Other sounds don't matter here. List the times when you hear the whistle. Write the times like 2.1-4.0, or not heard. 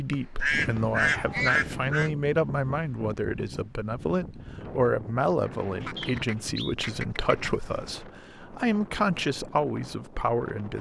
0.1-0.8, 6.0-6.8.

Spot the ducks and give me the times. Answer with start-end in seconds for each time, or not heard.
0.4-2.1, 5.8-8.0.